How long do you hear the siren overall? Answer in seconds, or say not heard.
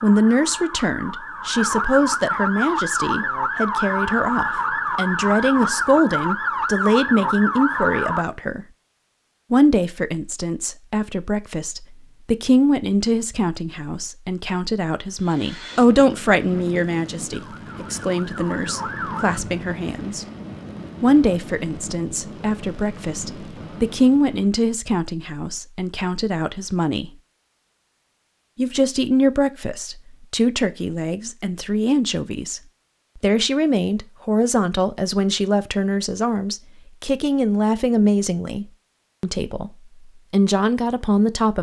11 s.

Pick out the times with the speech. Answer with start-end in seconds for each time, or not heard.
0.0-8.7, 9.5-20.2, 21.0-27.1, 28.6-41.5.